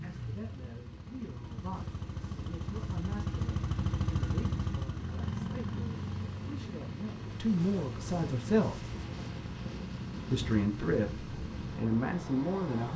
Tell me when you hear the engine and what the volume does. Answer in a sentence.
The engine can be heard from 0.0 to 12.8 s, getting louder then quieter.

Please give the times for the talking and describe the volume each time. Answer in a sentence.
You can hear the talking from 0.0 to 8.9 s, getting louder; and briefly from 10.3 to 12.9 s.